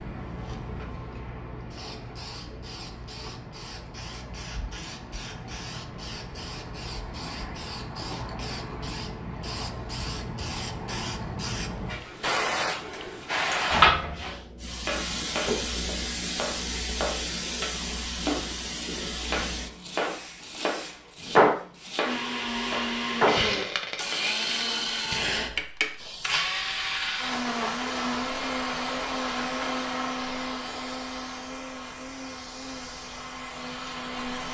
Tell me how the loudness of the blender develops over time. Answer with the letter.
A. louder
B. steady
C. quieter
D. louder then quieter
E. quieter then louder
C.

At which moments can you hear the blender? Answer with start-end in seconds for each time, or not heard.
22.0-34.4.